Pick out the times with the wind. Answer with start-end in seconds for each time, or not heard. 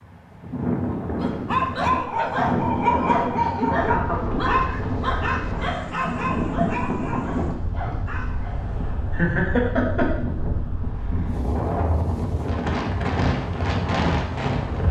0.0-14.8.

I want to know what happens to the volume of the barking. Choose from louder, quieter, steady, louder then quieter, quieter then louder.
quieter.